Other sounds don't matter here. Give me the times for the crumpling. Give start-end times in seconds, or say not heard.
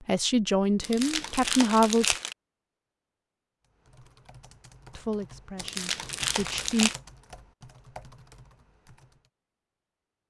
0.8-2.4, 5.5-7.0.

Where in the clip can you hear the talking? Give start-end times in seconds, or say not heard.
0.1-2.1, 5.0-6.9.